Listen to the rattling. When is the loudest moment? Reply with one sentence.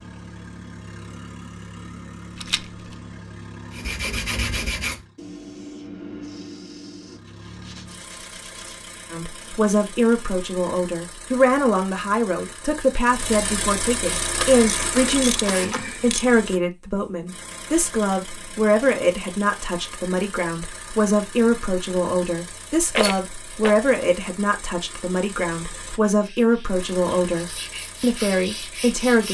The loudest moment of the rattling is at 23 seconds.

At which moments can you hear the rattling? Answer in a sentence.
The rattling can be heard from 2.4 to 3.0 s and from 22.9 to 23.8 s.